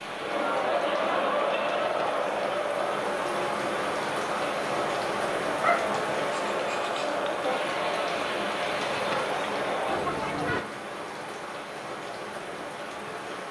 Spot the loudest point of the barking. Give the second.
6 s.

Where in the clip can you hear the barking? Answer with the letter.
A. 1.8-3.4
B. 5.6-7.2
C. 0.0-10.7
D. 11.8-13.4
B.